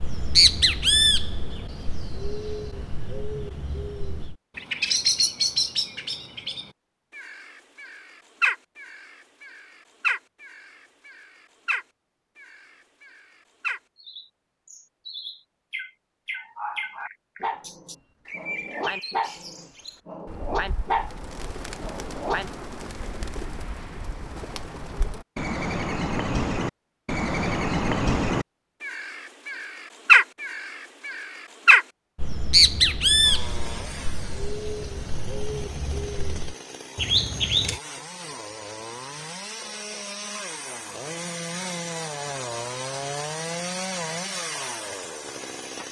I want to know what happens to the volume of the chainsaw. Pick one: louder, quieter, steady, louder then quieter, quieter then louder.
louder.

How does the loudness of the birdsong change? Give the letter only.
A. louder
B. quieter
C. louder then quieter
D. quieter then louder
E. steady
D.